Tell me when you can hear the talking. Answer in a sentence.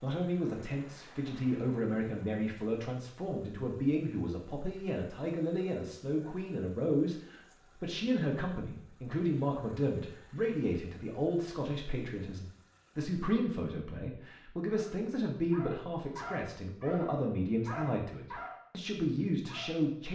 You can hear the talking from 0.0 to 20.1 s.